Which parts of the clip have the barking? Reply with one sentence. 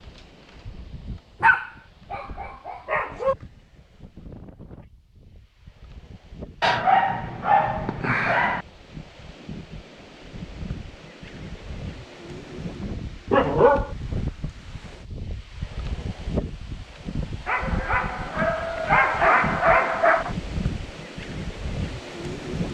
The barking can be heard from 1.4 to 3.4 s, from 6.6 to 8.7 s, from 13.3 to 13.9 s and from 17.4 to 20.4 s.